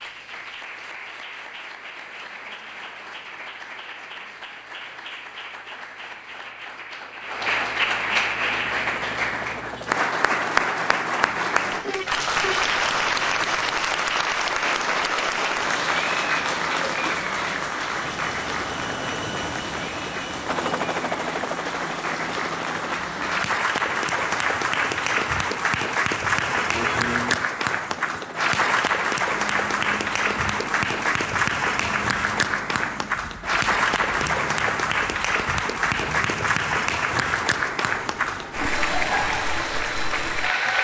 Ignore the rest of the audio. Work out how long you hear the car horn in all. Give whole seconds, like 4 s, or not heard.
2 s.